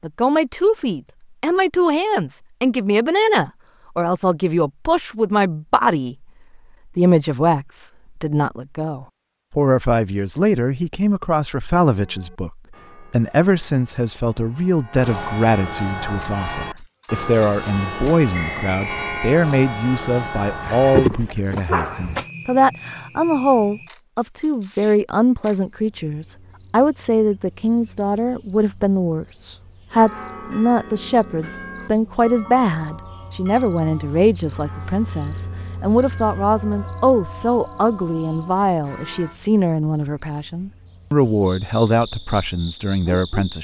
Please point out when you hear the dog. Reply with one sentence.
The dog can be heard from 20.6 to 22.2 s.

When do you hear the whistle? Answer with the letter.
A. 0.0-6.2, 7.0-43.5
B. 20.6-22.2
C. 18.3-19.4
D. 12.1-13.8
C.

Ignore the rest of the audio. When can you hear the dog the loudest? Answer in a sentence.
The volume of the dog peaks at 21 seconds.